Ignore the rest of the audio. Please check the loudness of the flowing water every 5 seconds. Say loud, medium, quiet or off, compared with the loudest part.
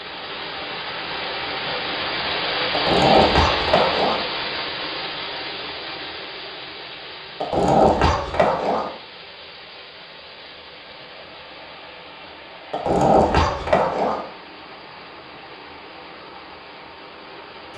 loud, medium, quiet, quiet.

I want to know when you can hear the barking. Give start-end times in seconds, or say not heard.
2.7-4.2, 7.4-8.9, 12.7-14.2.